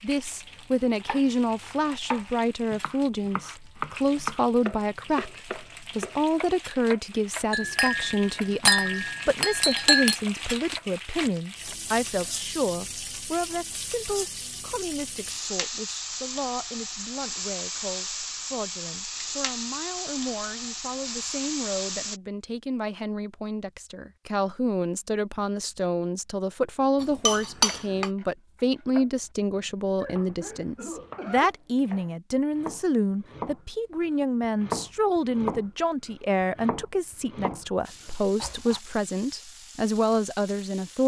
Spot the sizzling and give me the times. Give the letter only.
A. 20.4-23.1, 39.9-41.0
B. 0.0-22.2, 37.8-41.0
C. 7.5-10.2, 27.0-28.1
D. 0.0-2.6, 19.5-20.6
B.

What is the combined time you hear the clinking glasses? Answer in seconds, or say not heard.
4 s.